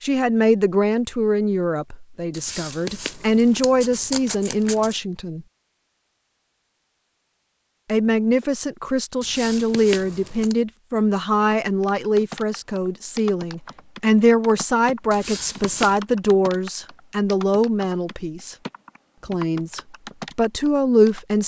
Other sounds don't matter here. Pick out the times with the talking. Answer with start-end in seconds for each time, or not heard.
0.0-5.5, 7.8-18.6, 19.2-21.4.